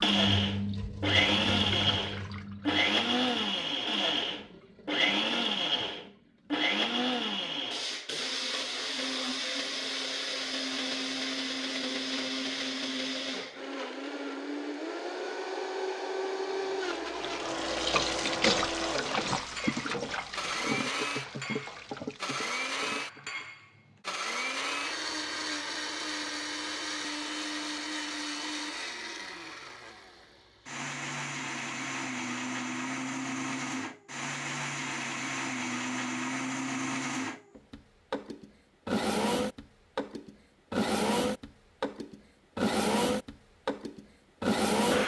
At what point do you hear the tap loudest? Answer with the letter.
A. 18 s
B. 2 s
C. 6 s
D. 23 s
A.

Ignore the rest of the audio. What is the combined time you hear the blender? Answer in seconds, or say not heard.
45 s.